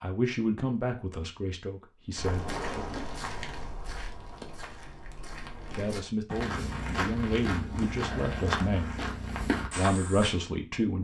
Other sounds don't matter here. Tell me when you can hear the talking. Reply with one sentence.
You can hear the talking from 0.0 to 2.6 s, from 5.7 to 8.9 s and from 9.8 to 11.0 s.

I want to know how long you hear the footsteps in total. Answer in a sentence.
You can hear the footsteps for 8 seconds altogether.